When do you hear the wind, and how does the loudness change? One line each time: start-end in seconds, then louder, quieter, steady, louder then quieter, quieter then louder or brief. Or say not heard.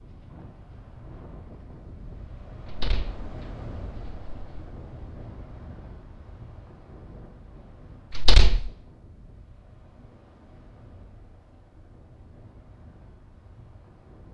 0.0-14.2 quieter.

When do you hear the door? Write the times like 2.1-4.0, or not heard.
2.6-4.7, 8.1-8.7.